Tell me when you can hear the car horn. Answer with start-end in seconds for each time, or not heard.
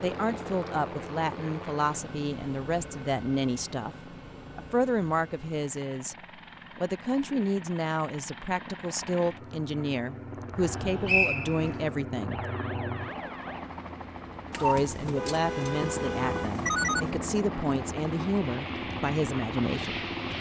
14.5-17.1.